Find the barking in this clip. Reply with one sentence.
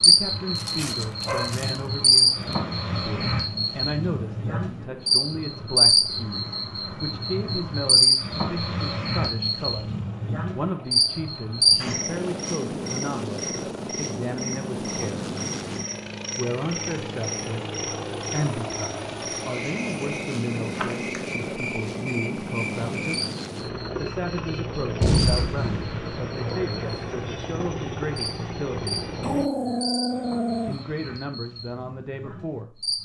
You can hear the barking from 0.6 to 1.8 s and from 29.2 to 30.8 s.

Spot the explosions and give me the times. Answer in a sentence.
The explosions can be heard from 25.0 to 26.2 s.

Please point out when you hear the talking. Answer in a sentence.
You can hear the talking from 0.0 to 9.9 s, from 10.5 to 15.3 s, from 16.4 to 23.3 s, from 23.9 to 28.9 s and from 30.6 to 33.0 s.